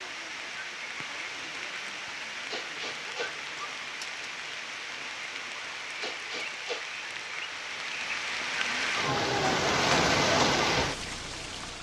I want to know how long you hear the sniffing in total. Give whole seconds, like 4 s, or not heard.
2 s.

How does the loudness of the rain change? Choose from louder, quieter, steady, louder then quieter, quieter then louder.
louder.